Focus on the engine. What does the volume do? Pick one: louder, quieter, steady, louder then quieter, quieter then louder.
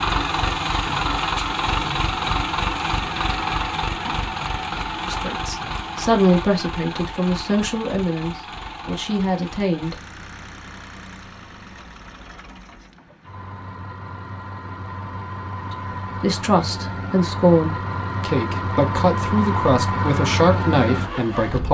quieter then louder.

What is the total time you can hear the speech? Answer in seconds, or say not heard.
11 s.